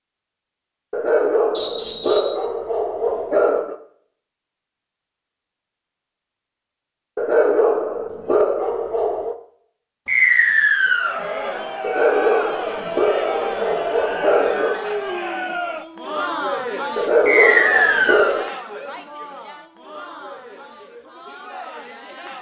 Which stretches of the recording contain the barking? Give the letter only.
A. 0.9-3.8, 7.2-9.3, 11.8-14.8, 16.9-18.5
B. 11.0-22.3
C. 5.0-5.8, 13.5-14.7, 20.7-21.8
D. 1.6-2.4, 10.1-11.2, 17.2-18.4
A.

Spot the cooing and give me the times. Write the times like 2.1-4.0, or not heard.
not heard.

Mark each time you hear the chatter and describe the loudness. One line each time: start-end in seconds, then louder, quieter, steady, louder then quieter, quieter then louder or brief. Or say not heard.
11.0-22.3 quieter.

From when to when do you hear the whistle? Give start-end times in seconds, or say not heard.
1.6-2.4, 10.1-11.2, 17.2-18.4.